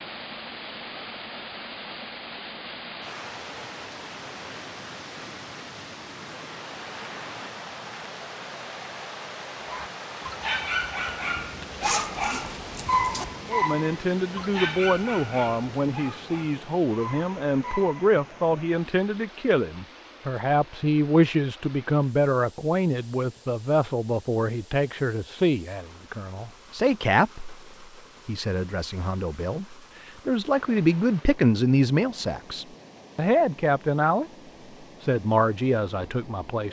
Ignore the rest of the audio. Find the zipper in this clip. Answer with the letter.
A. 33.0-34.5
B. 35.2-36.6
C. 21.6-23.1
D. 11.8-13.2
D.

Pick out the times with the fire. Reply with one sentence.
You can't hear the fire here.